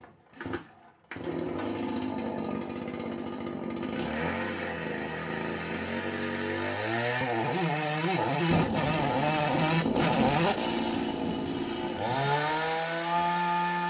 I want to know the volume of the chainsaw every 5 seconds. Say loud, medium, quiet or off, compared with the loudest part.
medium, loud, loud.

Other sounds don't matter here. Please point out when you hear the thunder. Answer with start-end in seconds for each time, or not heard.
8.4-12.2.